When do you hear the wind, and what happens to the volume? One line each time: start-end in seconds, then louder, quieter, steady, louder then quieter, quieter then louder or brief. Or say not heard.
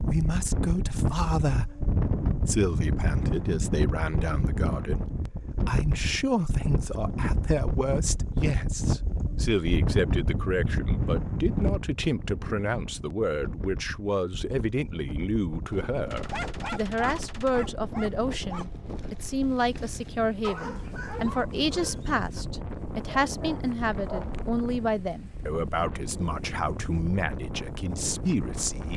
0.0-28.9 quieter.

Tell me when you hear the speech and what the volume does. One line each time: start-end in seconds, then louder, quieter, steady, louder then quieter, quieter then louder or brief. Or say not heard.
0.0-28.9 steady.